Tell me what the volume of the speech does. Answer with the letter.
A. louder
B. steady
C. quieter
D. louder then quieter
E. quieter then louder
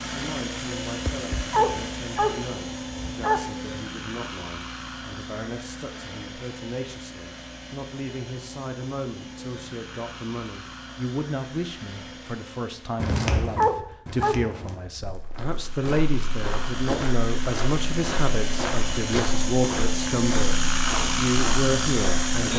A.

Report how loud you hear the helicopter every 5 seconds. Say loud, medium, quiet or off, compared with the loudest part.
medium, quiet, quiet, medium, loud.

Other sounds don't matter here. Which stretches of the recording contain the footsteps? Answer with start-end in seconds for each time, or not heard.
12.9-22.5.